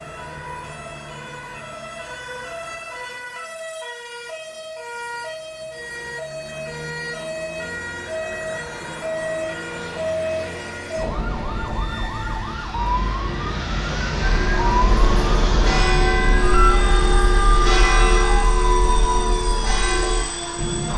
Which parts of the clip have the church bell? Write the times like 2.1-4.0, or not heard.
14.2-20.2.